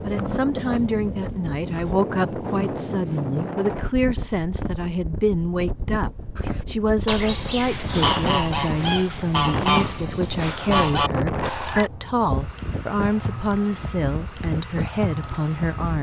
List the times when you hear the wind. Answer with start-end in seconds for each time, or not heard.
0.0-15.9.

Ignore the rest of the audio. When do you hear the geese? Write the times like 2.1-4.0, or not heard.
6.3-11.9.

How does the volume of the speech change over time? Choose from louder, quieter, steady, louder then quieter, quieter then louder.
steady.